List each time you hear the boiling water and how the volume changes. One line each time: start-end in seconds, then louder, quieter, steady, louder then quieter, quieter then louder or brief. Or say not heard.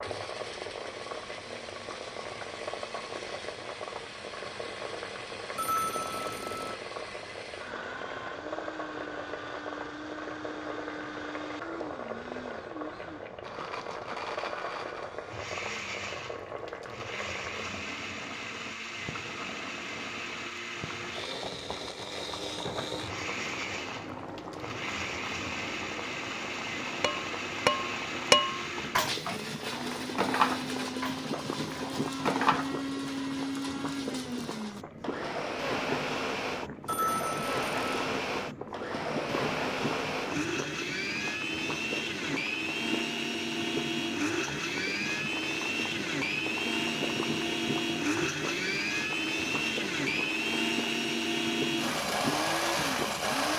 0.0-53.5 steady.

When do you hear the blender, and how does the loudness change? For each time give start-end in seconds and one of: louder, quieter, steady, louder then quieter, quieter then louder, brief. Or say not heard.
0.0-53.5 louder.